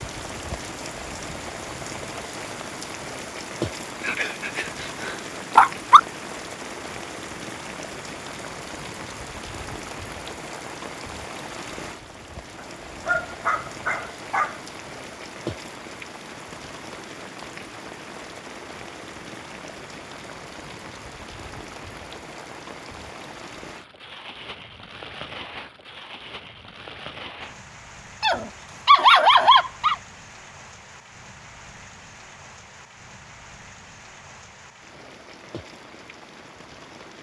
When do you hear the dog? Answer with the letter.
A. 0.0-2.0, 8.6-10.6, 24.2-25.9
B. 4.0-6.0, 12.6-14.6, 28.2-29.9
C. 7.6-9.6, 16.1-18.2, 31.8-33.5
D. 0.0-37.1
B.